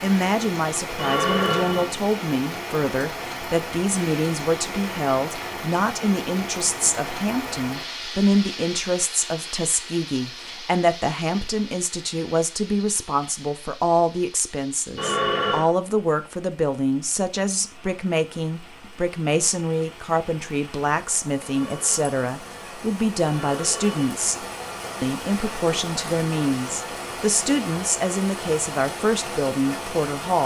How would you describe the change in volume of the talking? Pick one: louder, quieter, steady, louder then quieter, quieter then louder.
steady.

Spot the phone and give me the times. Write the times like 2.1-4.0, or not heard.
0.9-1.9, 14.9-15.7, 21.4-24.1.